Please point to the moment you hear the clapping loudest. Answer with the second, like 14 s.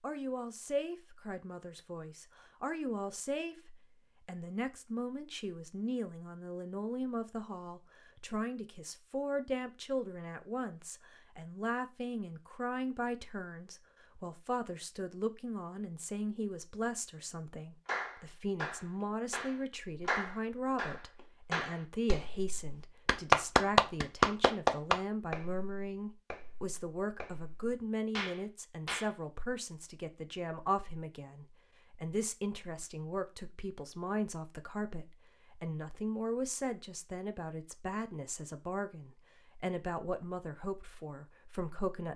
23 s.